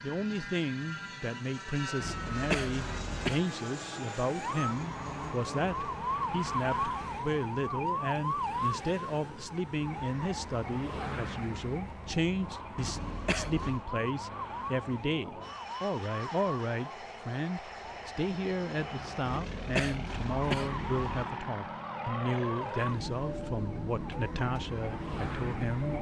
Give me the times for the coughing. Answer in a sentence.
You can hear the coughing from 2.0 to 3.5 s, from 12.8 to 13.8 s and from 19.2 to 21.2 s.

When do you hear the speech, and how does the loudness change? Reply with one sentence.
The speech can be heard from 0.0 to 25.9 s, at a steady volume.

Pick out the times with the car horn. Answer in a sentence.
You can't hear the car horn here.